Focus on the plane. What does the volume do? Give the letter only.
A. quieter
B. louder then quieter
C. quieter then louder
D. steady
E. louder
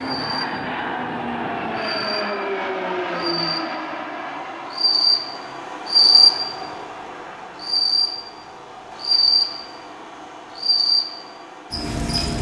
A.